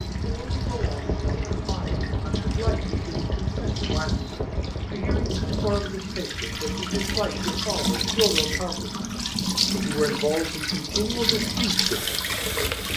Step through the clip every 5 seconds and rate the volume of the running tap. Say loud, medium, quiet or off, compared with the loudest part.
quiet, loud, loud.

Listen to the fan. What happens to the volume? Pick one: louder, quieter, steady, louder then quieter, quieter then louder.
quieter.